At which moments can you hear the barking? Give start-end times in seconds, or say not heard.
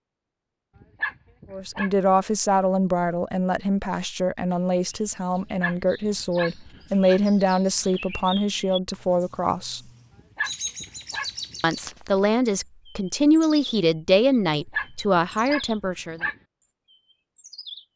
0.8-1.9, 5.3-7.2, 10.2-11.6, 14.5-16.4.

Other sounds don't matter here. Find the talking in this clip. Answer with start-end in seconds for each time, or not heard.
1.5-9.8, 11.6-16.2.